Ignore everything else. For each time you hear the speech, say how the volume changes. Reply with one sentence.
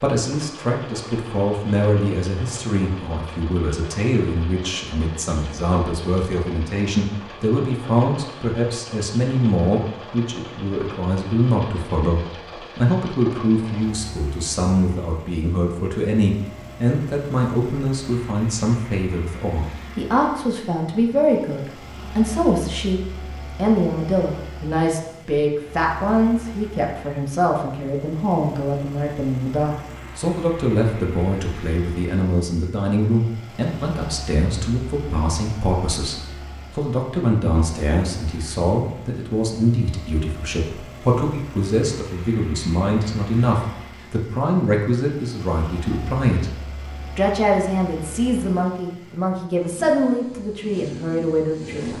You can hear the speech from 0.0 to 46.5 s, at a steady volume; and from 47.1 to 51.9 s, at a steady volume.